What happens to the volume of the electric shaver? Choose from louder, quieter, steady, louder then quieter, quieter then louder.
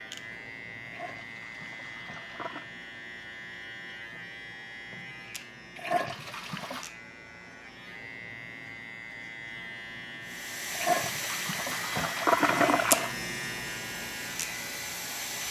louder.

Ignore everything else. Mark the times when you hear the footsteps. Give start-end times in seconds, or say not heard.
not heard.